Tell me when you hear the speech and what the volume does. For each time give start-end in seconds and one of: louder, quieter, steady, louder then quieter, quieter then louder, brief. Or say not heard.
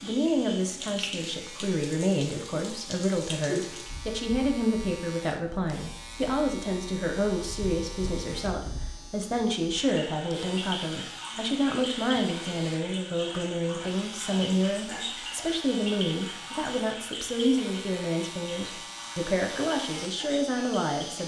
0.0-21.2 steady.